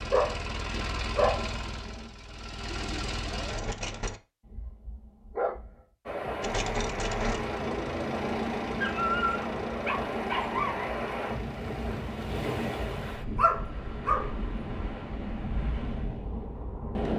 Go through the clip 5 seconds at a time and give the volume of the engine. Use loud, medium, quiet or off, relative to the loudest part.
loud, loud, medium, off.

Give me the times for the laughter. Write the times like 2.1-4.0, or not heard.
not heard.